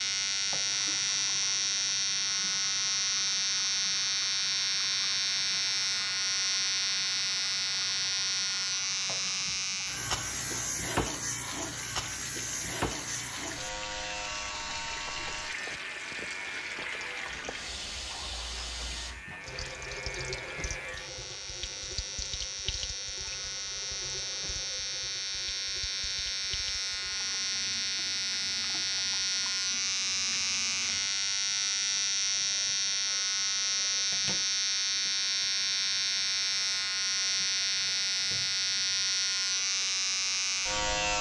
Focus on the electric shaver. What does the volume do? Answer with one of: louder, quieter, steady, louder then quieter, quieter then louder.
quieter then louder.